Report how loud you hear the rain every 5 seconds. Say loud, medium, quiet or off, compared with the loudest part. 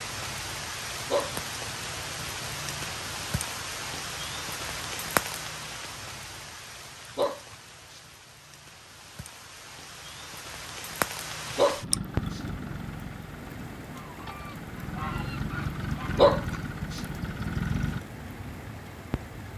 loud, loud, loud, medium.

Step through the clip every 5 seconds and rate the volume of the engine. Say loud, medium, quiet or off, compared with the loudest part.
off, off, medium, loud.